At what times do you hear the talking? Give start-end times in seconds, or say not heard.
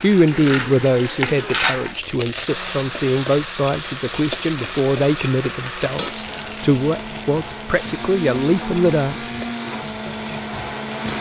0.0-9.3.